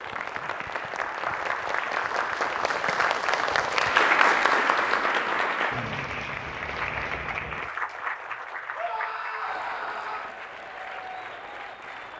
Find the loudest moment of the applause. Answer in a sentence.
The loudest moment of the applause is at 4 seconds.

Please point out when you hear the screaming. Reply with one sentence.
You can hear the screaming from 8.8 to 10.3 s.